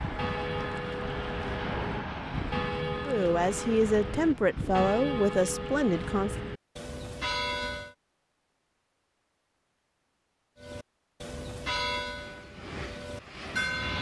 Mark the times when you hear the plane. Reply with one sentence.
You can hear the plane from 0.0 to 4.7 s and from 12.1 to 13.9 s.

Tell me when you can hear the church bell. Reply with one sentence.
You can hear the church bell from 0.0 to 8.0 s and from 10.6 to 13.9 s.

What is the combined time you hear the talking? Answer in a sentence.
The talking can be heard for 3 seconds in total.